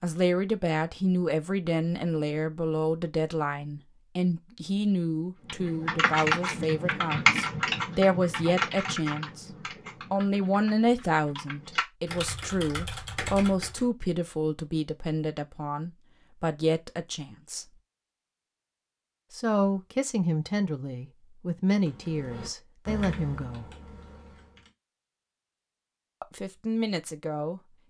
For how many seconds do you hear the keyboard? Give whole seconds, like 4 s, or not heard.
11 s.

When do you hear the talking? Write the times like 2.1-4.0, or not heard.
0.0-9.4, 10.1-17.6, 19.3-23.6, 26.2-27.6.